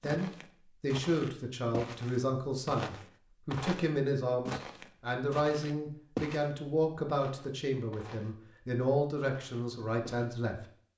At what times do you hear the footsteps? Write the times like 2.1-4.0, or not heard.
0.0-8.3, 9.2-10.3.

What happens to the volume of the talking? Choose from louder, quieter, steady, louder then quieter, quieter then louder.
steady.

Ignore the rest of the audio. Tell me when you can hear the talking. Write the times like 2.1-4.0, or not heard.
0.0-10.6.